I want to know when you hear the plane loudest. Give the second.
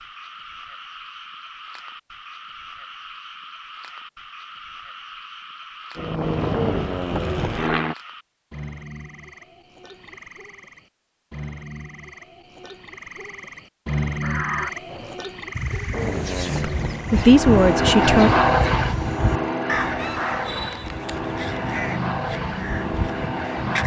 18 s.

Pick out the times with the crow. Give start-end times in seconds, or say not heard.
14.2-23.8.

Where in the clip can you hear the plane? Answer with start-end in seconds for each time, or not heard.
6.0-8.0, 15.9-23.8.